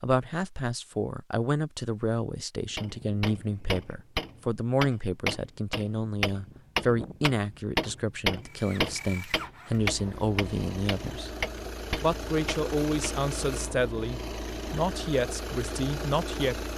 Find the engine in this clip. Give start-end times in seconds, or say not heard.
8.4-16.7.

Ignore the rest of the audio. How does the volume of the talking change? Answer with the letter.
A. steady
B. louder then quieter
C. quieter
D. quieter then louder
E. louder
A.